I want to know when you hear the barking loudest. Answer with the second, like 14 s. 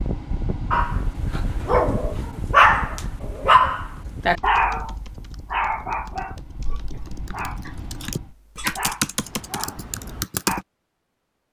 3 s.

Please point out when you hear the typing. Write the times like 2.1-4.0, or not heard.
4.0-10.7.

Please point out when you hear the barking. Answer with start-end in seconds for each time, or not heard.
0.7-10.7.